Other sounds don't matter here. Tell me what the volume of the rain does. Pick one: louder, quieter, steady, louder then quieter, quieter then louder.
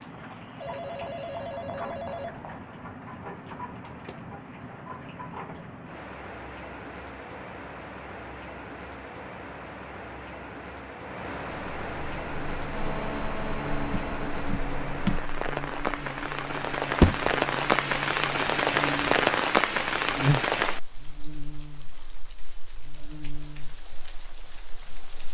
louder then quieter.